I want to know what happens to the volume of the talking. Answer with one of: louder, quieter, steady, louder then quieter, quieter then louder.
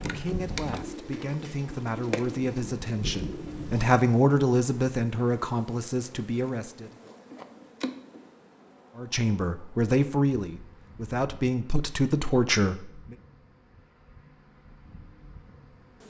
louder.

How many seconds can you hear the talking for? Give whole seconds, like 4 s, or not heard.
11 s.